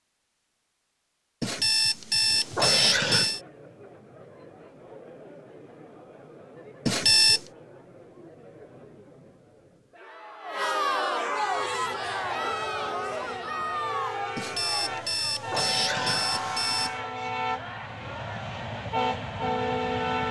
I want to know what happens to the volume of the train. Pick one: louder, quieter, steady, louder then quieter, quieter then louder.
louder.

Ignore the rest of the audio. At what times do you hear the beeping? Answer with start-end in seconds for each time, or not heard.
1.4-3.4, 6.8-7.4, 14.3-16.9.